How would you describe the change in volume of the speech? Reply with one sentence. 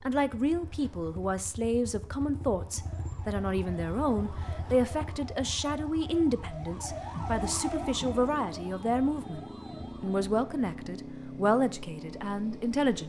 The loudness of the speech stays about the same.